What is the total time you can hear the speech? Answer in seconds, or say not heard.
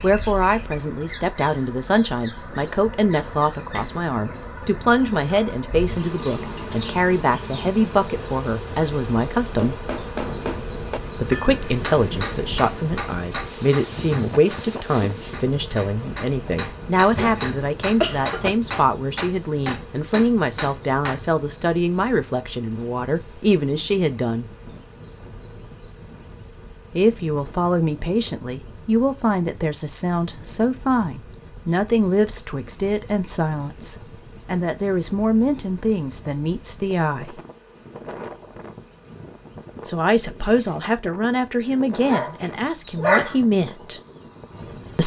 38 s.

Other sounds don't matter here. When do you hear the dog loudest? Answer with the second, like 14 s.
43 s.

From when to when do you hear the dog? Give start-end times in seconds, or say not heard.
41.8-43.4.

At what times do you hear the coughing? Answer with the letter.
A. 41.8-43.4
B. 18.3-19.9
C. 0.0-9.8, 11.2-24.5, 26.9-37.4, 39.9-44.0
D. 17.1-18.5
D.